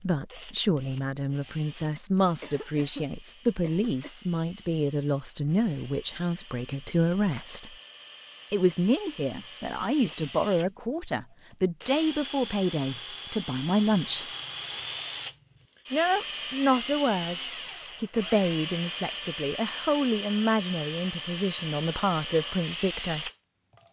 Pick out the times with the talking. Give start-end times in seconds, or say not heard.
0.0-7.8, 8.5-14.2, 15.9-17.4, 18.0-23.3.